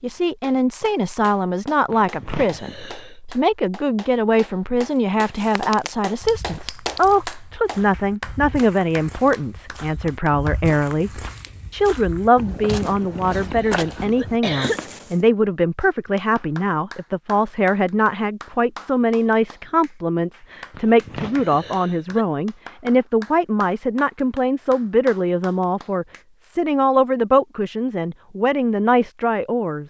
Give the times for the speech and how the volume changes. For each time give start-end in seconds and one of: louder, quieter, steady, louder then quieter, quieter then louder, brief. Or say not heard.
0.0-29.8 steady.